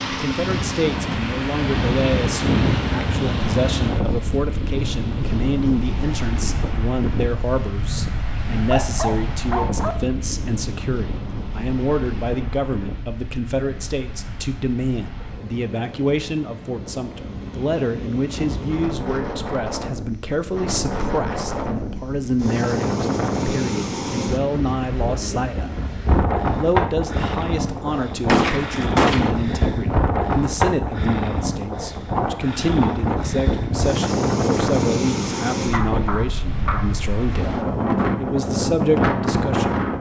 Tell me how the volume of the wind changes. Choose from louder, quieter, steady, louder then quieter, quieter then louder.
quieter then louder.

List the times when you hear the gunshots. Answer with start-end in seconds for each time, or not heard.
28.2-29.3.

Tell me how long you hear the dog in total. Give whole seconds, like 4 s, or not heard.
3 s.